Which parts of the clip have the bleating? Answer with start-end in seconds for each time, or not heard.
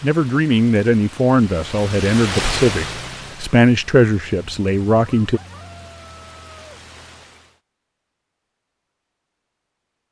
not heard.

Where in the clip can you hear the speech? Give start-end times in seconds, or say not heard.
0.0-5.4.